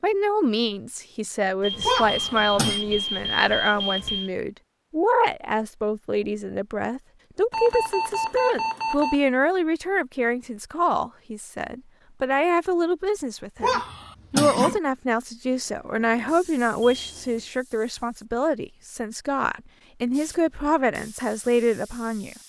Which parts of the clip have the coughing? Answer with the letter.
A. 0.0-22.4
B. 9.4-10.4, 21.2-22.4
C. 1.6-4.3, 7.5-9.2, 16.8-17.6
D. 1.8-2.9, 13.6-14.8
D.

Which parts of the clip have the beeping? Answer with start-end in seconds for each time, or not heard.
1.6-4.3, 7.5-9.2, 16.8-17.6.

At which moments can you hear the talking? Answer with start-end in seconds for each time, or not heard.
0.0-22.4.